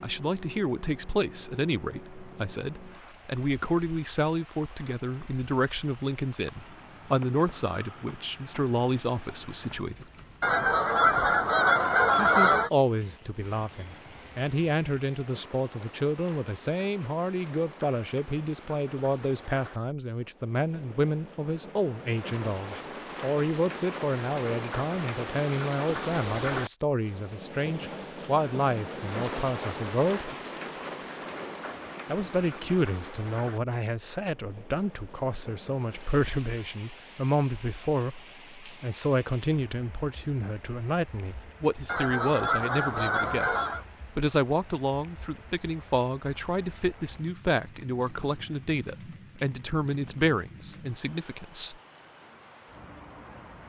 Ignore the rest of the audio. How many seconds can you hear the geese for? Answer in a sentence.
The geese can be heard for 4 seconds in total.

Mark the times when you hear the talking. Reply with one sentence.
The talking can be heard from 0.0 to 10.1 s, from 12.2 to 30.3 s and from 32.0 to 51.8 s.